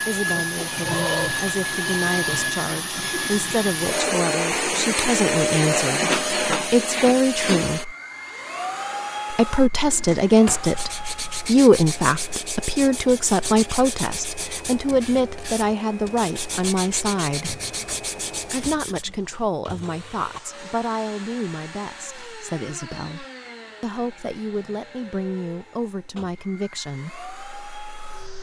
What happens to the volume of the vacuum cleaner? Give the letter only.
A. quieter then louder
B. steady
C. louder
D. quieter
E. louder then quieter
D.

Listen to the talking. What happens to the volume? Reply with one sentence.
The loudness of the talking goes up, then down.